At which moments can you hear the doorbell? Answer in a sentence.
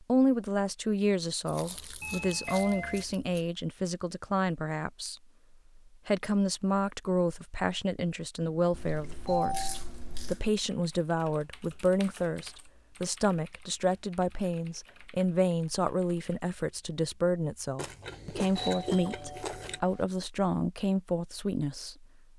You can hear the doorbell from 2.0 to 3.0 s, from 8.4 to 9.8 s and from 18.6 to 20.1 s.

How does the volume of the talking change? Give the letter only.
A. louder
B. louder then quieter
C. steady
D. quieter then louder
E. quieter
C.